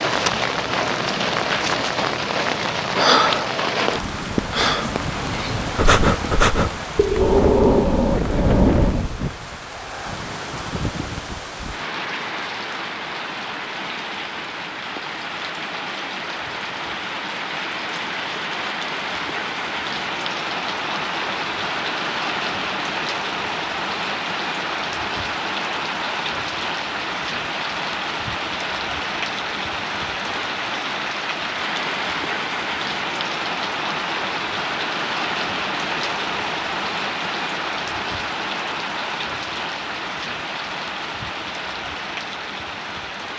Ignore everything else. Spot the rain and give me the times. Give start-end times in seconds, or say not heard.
0.0-43.3.